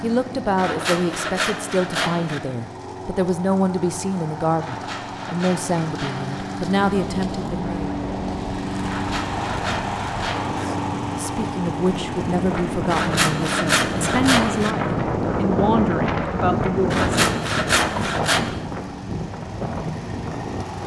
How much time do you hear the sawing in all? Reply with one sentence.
You can hear the sawing for 9 seconds altogether.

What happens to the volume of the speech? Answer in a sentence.
The loudness of the speech stays about the same.